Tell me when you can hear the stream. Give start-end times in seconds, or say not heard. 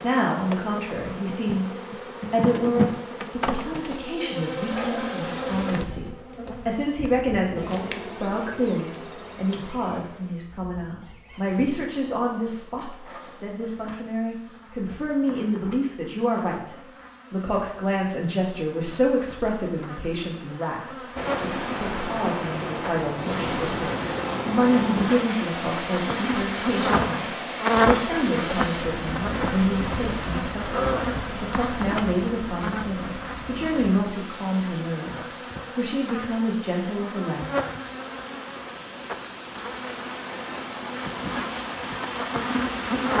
21.1-43.1.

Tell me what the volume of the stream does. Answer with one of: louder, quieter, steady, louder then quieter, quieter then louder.
quieter then louder.